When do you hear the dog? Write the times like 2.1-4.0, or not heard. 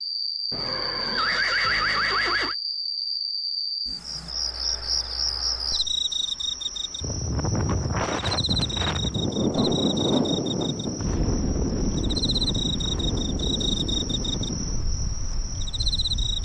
not heard.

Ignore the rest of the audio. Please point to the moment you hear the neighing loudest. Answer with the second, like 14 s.
2 s.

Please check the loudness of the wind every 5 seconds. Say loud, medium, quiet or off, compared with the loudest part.
off, loud, loud, quiet.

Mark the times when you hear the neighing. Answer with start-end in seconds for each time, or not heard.
0.5-2.5.